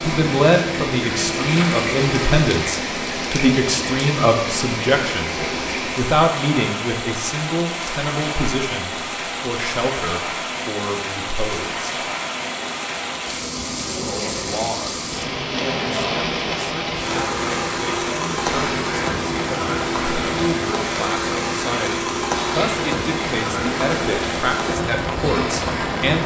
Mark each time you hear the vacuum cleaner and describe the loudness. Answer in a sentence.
The vacuum cleaner can be heard briefly from 0.0 to 2.5 s; and from 17.0 to 26.2 s, at a steady volume.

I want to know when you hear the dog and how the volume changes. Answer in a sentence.
The dog can't be heard in this clip.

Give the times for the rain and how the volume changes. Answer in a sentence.
The rain can be heard from 0.0 to 26.2 s, at a steady volume.